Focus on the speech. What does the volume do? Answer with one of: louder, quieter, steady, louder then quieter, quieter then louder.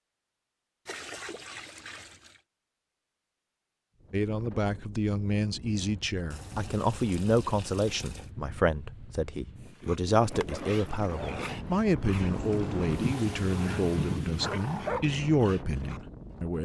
steady.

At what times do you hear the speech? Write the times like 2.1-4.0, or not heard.
4.1-16.5.